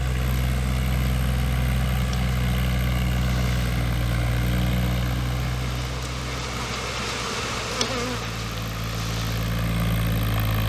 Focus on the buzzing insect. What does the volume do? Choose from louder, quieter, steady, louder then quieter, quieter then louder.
louder then quieter.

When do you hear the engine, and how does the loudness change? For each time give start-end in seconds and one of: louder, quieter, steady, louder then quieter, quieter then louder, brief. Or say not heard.
0.0-10.6 quieter then louder.